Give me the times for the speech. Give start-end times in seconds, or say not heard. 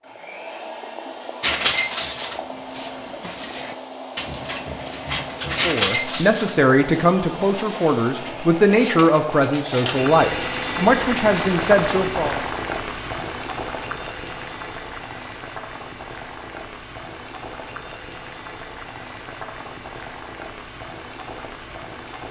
5.5-12.4.